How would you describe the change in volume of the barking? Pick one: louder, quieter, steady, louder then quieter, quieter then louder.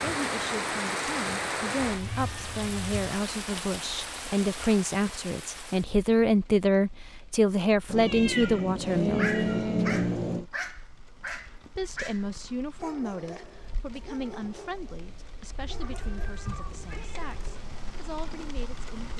quieter.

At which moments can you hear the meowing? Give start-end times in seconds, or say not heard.
1.9-2.9, 7.8-10.4, 15.6-17.4.